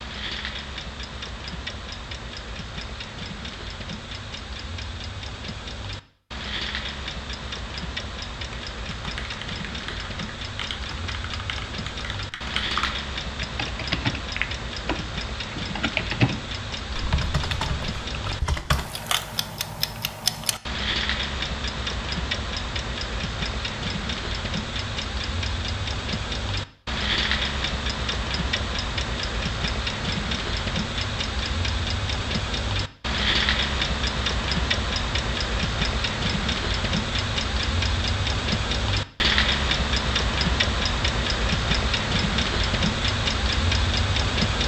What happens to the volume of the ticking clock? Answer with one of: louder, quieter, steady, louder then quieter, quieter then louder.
louder.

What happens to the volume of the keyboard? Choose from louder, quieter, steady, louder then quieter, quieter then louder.
louder then quieter.